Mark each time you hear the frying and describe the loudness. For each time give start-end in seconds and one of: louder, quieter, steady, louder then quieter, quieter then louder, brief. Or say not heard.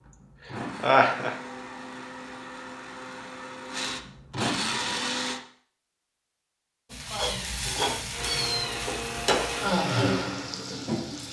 6.9-11.2 quieter.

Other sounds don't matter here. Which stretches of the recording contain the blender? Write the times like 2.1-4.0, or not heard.
0.0-5.4, 8.1-11.2.